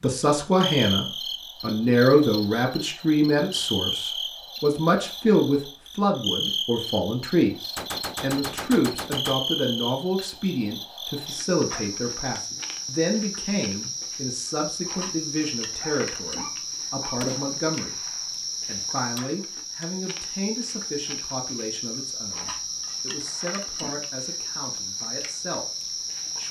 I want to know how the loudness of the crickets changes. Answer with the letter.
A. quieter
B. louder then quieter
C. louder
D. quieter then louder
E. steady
E.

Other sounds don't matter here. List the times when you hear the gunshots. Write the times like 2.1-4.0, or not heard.
7.8-9.4, 17.2-18.4.